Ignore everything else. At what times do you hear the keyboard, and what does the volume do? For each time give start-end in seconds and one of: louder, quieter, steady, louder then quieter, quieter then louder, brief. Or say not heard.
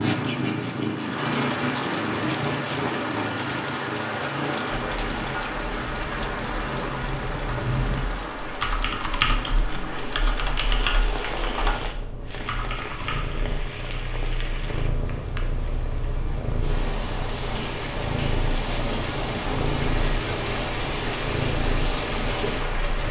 4.8-13.4 louder then quieter.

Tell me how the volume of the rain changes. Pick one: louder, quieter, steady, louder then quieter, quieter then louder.
quieter then louder.